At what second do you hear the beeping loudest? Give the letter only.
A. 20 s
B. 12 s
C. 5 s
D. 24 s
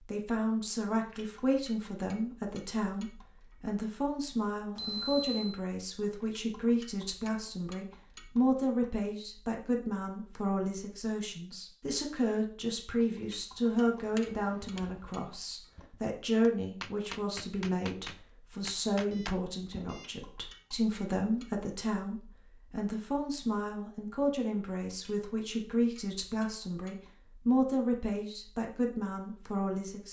C.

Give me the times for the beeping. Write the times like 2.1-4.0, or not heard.
4.8-5.6, 18.9-20.1.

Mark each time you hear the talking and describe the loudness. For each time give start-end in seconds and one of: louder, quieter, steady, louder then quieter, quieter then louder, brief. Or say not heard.
0.1-30.0 steady.